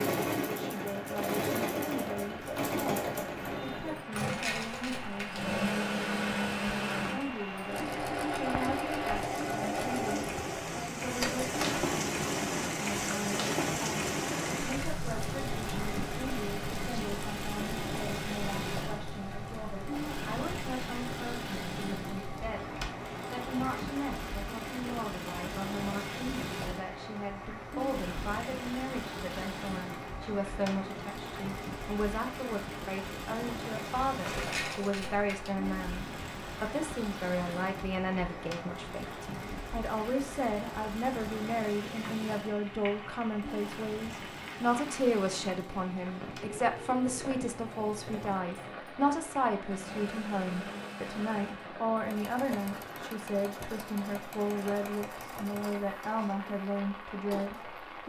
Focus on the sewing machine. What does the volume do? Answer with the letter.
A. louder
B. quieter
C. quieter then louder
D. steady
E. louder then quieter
B.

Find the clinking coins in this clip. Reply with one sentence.
The clinking coins can be heard from 4.1 to 5.5 s and from 34.2 to 35.5 s.